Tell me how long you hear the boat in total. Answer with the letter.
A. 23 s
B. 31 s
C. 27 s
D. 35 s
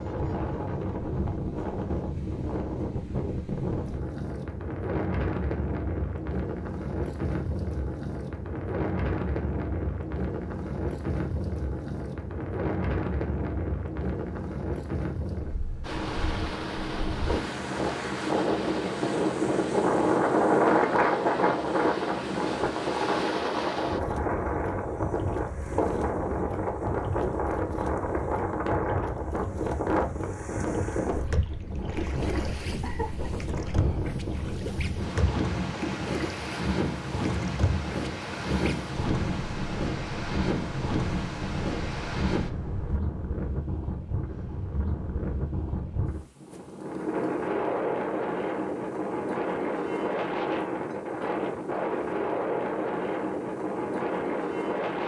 C.